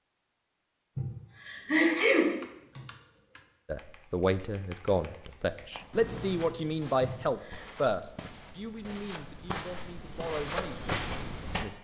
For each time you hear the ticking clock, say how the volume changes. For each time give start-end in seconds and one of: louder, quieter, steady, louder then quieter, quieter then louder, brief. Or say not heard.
not heard.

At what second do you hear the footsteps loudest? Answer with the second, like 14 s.
11 s.